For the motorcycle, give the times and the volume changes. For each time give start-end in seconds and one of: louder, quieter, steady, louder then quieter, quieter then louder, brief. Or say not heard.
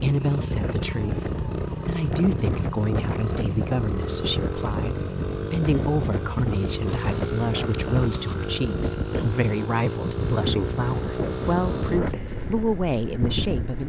0.0-13.8 steady.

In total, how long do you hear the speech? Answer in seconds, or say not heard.
14 s.